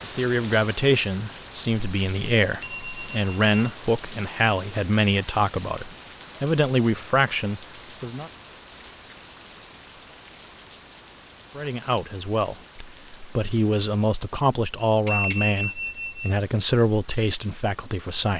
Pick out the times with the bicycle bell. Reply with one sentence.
You can hear the bicycle bell from 2.6 to 3.7 s and from 15.1 to 16.4 s.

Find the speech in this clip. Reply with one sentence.
The speech can be heard from 0.0 to 8.3 s and from 11.6 to 18.3 s.